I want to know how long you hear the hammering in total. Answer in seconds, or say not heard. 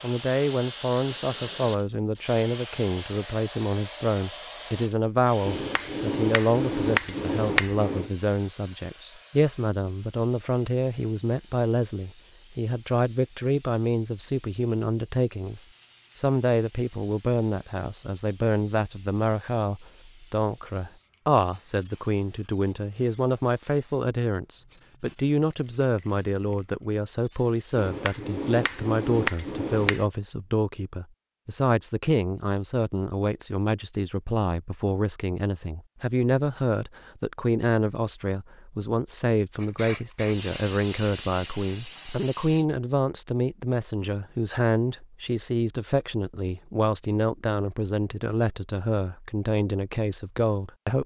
5 s.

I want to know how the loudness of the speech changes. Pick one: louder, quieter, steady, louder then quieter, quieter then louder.
steady.